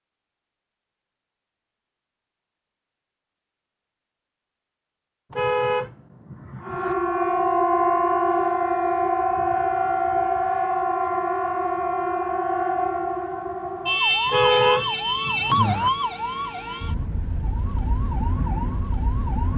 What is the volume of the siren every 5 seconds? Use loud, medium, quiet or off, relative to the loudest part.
off, loud, loud, medium.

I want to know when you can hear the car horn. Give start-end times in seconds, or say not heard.
5.3-7.0, 14.2-15.9.